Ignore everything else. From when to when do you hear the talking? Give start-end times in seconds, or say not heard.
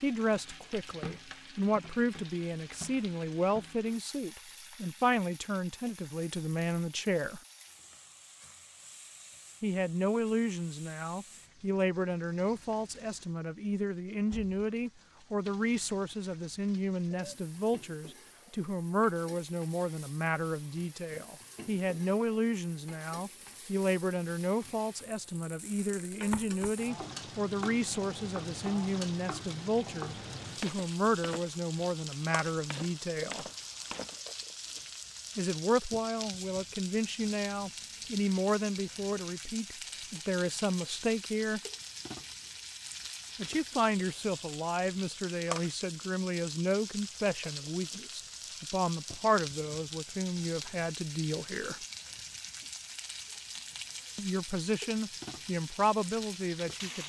0.0-7.4, 9.6-33.5, 35.4-41.6, 43.4-51.8, 54.1-57.0.